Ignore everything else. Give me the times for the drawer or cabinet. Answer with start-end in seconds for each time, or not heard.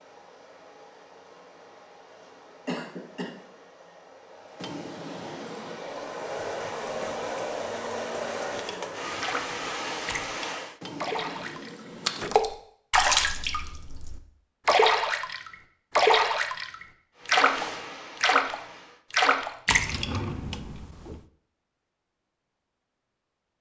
4.5-5.8, 10.8-12.6, 19.7-21.2.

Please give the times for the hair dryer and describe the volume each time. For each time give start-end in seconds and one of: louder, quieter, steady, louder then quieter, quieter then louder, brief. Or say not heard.
0.0-10.8 louder
17.1-19.1 brief.